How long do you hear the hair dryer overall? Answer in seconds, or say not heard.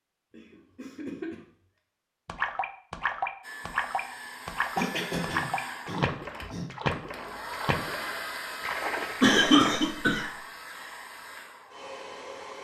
9 s.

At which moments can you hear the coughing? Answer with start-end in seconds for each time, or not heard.
0.3-1.4, 4.8-6.7, 9.2-10.3.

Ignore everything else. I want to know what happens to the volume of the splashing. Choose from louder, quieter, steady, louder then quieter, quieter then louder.
steady.